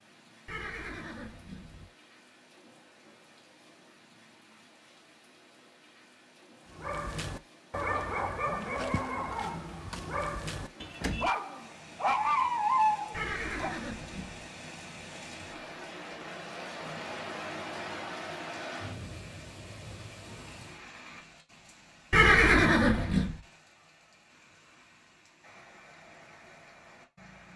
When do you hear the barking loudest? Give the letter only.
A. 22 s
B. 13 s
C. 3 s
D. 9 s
B.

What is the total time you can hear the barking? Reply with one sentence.
The barking can be heard for 7 seconds in total.